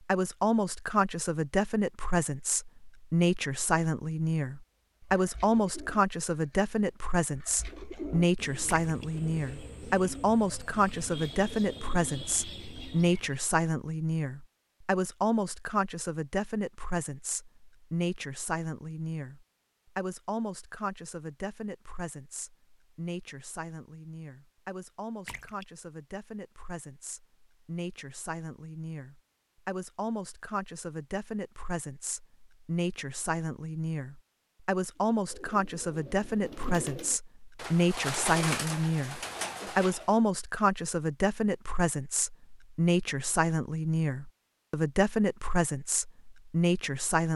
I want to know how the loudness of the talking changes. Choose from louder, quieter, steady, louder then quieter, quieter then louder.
quieter then louder.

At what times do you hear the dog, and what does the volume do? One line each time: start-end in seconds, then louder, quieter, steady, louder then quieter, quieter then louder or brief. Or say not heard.
not heard.